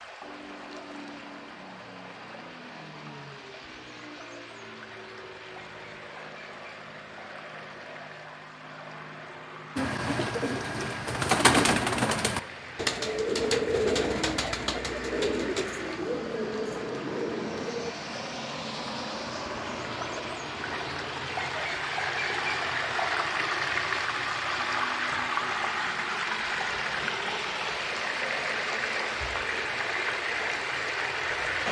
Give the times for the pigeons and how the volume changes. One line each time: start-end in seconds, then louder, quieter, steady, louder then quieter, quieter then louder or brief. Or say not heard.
9.8-17.9 quieter.